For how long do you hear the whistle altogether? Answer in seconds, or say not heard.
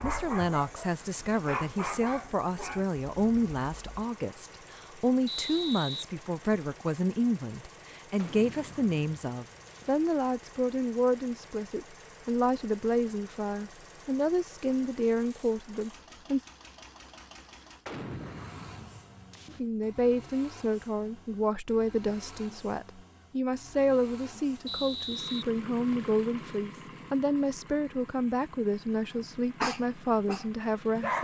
3 s.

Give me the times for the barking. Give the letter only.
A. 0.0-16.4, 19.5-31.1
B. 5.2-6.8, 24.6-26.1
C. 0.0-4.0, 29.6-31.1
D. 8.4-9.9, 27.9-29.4
C.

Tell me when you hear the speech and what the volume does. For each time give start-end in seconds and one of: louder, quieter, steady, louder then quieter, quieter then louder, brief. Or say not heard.
0.0-16.4 steady
19.5-31.1 steady.